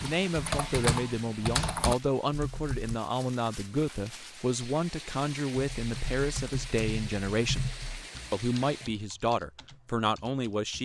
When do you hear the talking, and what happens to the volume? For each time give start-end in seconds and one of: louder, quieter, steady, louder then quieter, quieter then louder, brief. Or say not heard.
0.0-7.7 steady
8.3-10.8 brief.